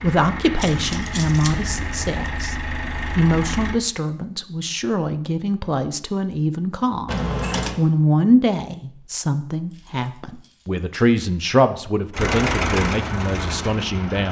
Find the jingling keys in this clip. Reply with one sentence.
The jingling keys can be heard from 0.6 to 2.5 s, from 7.0 to 7.8 s and from 9.7 to 11.2 s.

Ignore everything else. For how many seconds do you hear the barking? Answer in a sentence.
You can't hear the barking here.